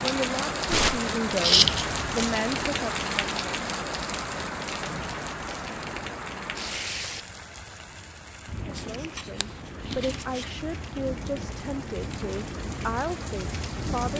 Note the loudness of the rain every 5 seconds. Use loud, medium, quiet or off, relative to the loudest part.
loud, medium, medium.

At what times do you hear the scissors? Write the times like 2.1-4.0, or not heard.
1.4-2.4, 8.8-10.4.